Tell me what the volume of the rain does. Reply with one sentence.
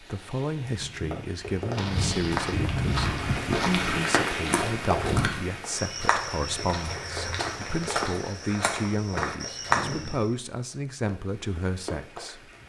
The loudness of the rain goes up, then down.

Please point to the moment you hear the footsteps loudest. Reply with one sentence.
The loudest moment of the footsteps is at 10 seconds.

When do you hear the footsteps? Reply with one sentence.
You can hear the footsteps from 1.6 to 10.3 s.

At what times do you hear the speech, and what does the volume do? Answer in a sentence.
The speech can be heard from 0.0 to 12.5 s, at a steady volume.